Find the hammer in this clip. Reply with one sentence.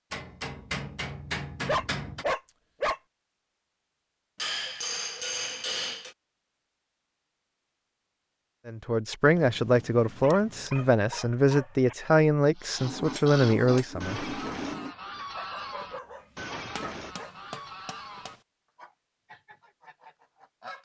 The hammer can be heard from 0.1 to 2.2 s, from 4.3 to 6.2 s, from 9.3 to 10.8 s, from 12.8 to 14.9 s and from 16.8 to 18.4 s.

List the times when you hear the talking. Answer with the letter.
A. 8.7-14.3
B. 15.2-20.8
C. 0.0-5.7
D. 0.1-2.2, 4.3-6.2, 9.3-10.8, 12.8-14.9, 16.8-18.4
A.